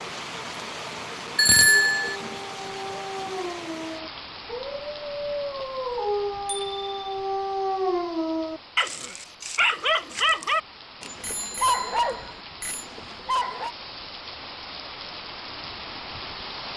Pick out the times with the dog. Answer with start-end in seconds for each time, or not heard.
1.6-13.8.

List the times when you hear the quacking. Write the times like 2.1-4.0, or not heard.
not heard.